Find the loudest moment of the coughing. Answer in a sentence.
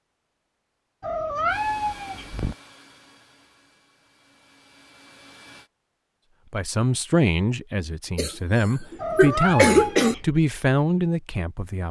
The loudest moment of the coughing is at 10 seconds.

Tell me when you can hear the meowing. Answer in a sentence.
You can hear the meowing from 1.0 to 2.5 s and from 9.0 to 10.2 s.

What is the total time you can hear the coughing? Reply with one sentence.
You can hear the coughing for 2 seconds altogether.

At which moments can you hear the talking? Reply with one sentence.
You can hear the talking from 6.5 to 11.8 s.